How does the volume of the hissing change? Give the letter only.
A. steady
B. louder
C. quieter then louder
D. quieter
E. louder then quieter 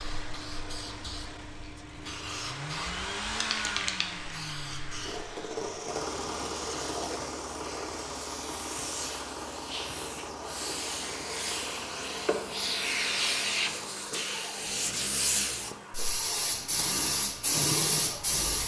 B.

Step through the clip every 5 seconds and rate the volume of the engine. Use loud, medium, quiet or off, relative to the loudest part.
loud, loud, loud, medium.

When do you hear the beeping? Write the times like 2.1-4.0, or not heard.
not heard.